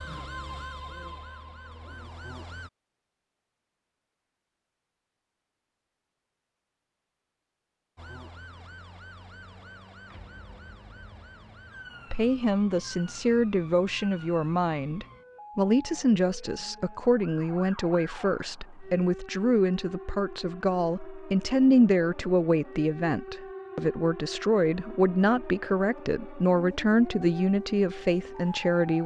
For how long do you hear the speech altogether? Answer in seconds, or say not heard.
17 s.